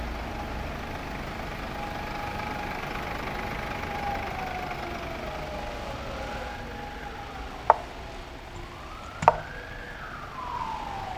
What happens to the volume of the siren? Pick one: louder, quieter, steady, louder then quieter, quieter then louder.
louder.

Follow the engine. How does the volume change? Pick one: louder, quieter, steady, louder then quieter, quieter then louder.
quieter.